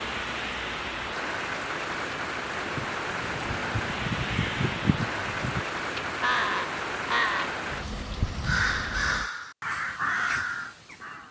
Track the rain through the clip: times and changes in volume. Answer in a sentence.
The rain can be heard from 0.0 to 9.3 s, at a steady volume.